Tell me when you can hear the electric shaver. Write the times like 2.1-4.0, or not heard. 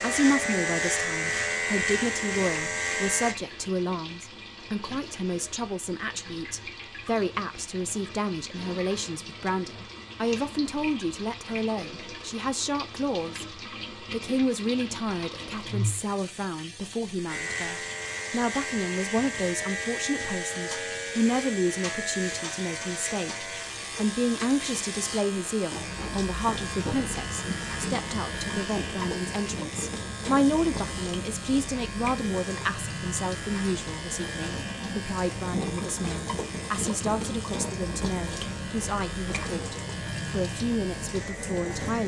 0.0-3.4, 17.2-42.0.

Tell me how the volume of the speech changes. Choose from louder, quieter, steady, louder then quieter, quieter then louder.
steady.